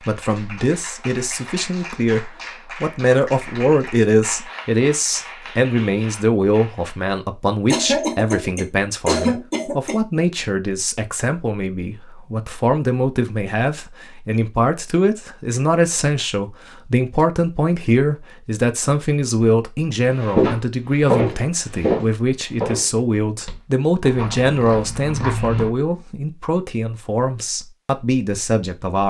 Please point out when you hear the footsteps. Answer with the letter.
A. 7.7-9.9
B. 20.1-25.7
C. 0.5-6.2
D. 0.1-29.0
B.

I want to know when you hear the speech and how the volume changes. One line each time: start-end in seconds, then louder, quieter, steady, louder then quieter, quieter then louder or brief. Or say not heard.
0.1-29.0 steady.